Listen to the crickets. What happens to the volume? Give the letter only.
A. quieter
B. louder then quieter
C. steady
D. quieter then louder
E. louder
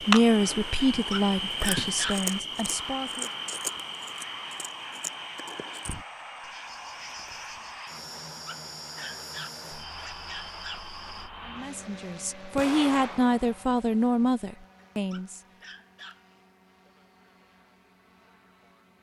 A.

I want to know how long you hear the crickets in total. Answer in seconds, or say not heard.
11 s.